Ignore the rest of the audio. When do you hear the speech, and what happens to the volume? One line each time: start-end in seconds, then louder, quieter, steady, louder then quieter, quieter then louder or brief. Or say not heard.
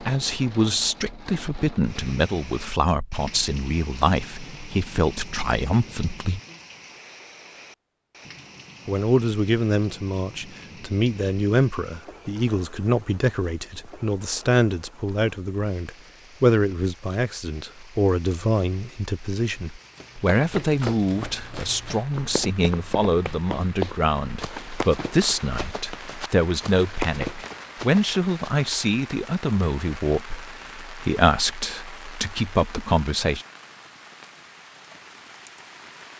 0.0-6.4 steady
8.8-33.5 steady.